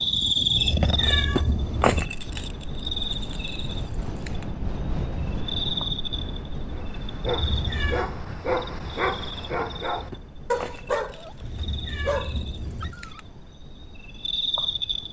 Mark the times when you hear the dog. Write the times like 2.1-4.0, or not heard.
6.8-13.2.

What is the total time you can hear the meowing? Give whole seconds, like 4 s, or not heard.
4 s.